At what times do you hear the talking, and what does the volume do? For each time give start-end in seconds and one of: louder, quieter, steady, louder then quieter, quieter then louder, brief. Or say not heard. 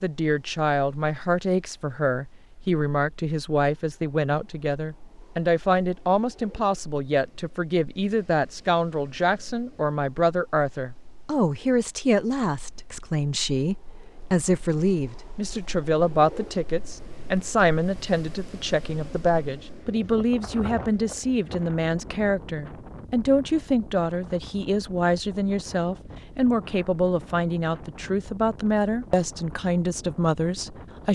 0.0-31.1 steady.